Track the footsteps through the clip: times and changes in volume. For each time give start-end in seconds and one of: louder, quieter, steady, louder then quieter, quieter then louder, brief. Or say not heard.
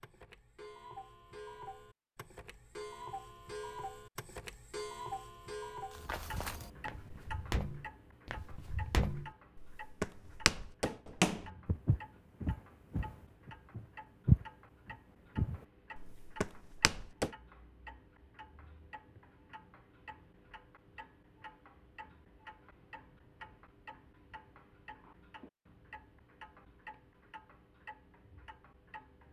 5.9-14.4 louder then quieter
15.3-17.3 brief.